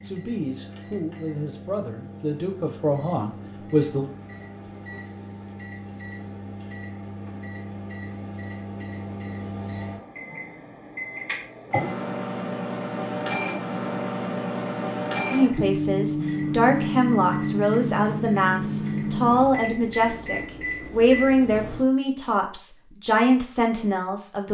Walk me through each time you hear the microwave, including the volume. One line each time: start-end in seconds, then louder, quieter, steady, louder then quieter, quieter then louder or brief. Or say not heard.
0.0-21.9 louder.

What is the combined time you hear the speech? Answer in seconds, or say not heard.
13 s.